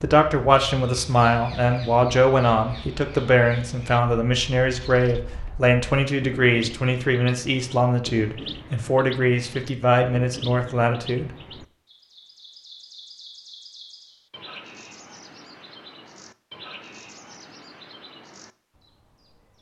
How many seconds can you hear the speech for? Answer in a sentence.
The speech can be heard for 11 seconds in total.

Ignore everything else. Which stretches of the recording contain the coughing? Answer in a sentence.
The coughing can't be heard in this clip.